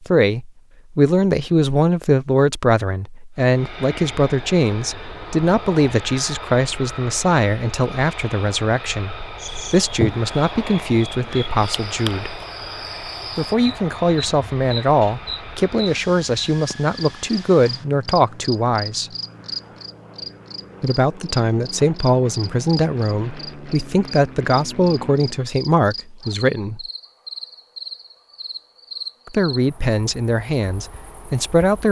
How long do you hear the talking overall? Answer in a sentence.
The talking can be heard for 27 seconds in total.